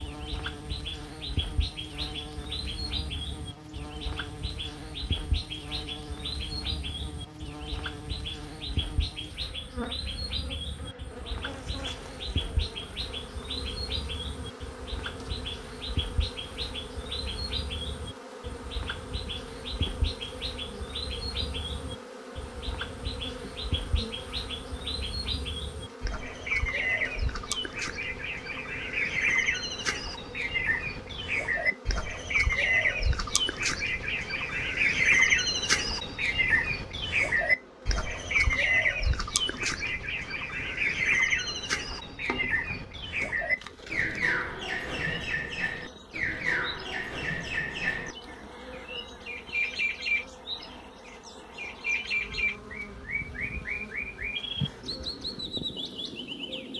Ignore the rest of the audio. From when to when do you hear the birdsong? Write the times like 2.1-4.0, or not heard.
0.0-56.7.